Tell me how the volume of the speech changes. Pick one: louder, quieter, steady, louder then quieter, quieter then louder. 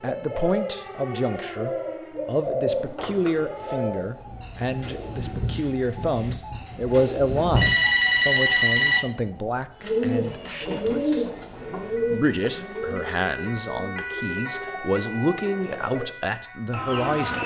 steady.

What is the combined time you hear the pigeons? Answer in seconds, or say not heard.
15 s.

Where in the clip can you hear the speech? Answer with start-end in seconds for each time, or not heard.
0.0-11.2, 12.1-17.4.